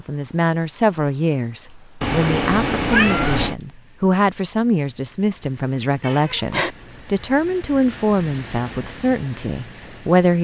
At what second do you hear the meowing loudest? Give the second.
3 s.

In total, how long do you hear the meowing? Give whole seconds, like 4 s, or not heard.
2 s.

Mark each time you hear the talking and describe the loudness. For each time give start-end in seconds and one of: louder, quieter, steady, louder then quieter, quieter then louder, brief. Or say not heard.
0.0-10.3 steady.